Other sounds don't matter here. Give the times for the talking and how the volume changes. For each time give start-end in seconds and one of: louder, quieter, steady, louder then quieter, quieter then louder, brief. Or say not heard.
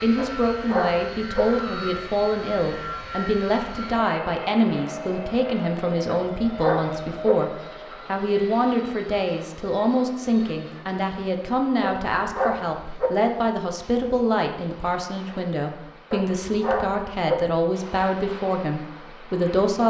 0.0-19.8 steady.